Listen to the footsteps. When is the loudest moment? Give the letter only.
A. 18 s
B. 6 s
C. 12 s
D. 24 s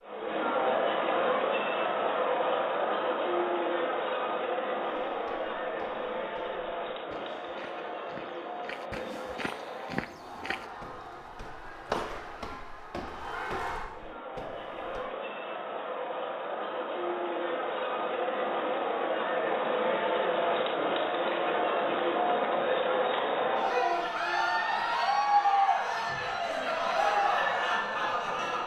C.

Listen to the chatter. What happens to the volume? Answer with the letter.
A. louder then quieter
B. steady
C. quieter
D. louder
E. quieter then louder
E.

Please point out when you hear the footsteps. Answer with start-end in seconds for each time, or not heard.
4.8-15.1.